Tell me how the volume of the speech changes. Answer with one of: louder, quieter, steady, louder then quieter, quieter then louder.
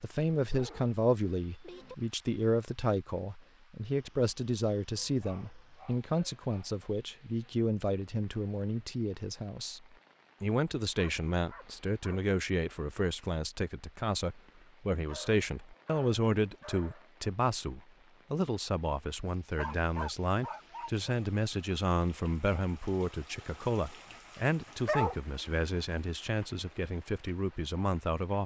steady.